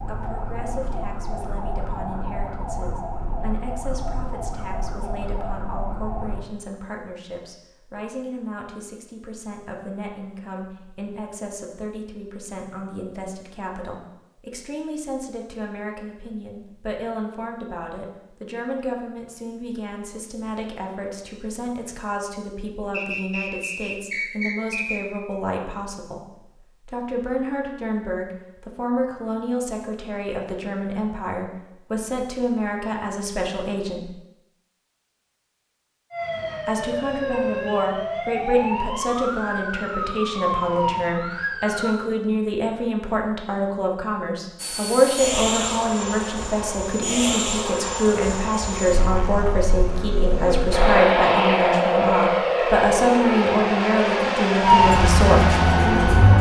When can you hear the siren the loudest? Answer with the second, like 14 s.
55 s.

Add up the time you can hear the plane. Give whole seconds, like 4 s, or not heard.
12 s.